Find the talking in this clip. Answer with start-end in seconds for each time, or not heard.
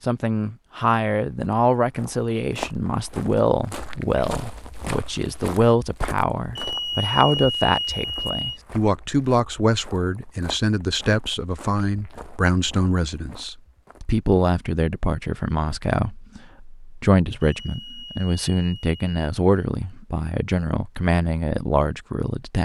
0.1-22.5.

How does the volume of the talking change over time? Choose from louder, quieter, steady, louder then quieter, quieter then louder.
steady.